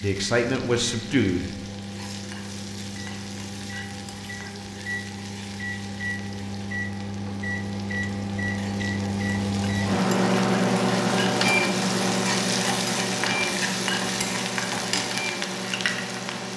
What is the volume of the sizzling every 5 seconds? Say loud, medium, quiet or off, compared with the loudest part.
quiet, quiet, loud, loud.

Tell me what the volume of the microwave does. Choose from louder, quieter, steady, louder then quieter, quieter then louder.
louder then quieter.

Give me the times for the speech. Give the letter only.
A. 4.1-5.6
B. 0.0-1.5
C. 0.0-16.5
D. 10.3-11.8
B.